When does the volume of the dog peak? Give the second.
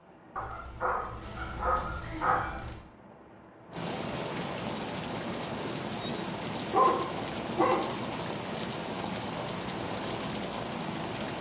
7 s.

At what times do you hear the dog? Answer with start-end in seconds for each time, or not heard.
0.3-2.8, 6.7-8.1.